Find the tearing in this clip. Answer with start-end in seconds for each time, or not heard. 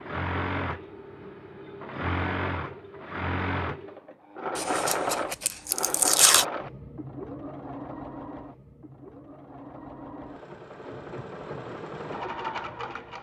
4.5-6.5.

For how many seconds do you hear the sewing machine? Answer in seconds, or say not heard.
13 s.